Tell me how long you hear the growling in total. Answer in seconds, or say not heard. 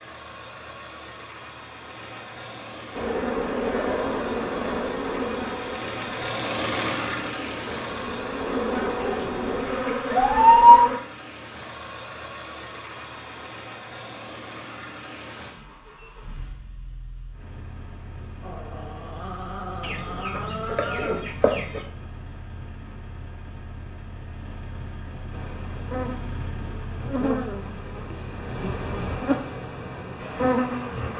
4 s.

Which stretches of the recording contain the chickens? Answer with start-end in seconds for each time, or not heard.
8.8-10.8, 19.8-21.8.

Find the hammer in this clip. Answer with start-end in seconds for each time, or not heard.
not heard.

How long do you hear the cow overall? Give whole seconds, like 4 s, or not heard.
not heard.